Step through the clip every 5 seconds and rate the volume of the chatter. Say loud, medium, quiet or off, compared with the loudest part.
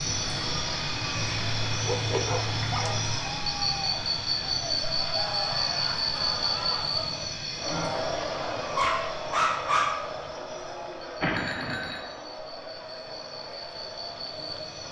medium, loud, medium.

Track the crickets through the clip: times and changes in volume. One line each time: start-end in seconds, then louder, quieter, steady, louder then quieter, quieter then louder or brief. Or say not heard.
0.0-14.8 quieter.